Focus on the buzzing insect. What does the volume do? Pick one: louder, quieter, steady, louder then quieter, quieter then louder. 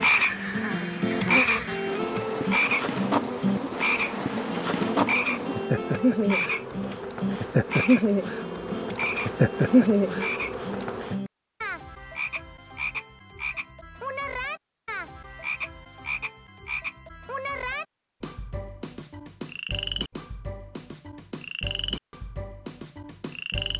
louder.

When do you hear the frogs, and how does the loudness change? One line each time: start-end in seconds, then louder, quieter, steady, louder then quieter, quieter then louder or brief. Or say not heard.
0.0-23.7 quieter.